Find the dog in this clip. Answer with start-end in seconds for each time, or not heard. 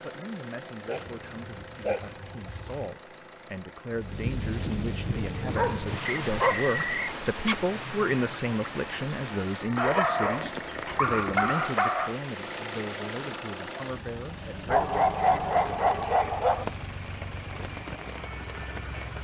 0.8-3.0, 5.3-7.7, 9.8-12.2, 14.7-16.6.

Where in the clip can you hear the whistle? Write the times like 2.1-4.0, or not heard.
6.0-7.2.